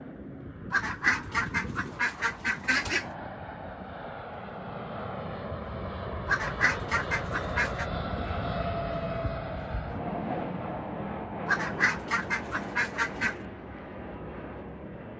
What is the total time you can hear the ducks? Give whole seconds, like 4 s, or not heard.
6 s.